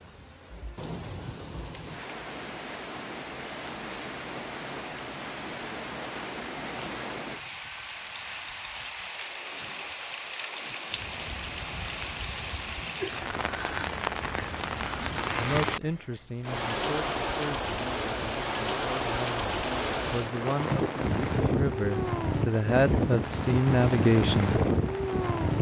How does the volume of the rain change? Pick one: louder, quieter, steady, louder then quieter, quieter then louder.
louder.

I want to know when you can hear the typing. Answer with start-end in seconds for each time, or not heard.
not heard.